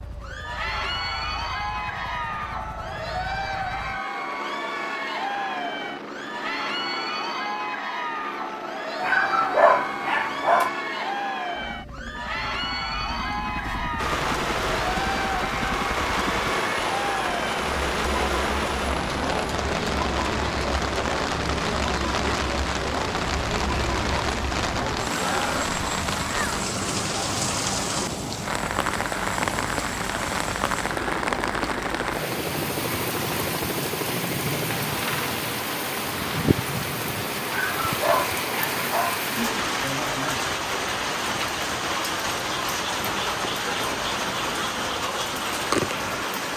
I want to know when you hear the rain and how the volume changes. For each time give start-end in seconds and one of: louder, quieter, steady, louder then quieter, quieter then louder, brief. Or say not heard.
13.9-46.5 steady.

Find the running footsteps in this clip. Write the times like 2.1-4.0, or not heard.
not heard.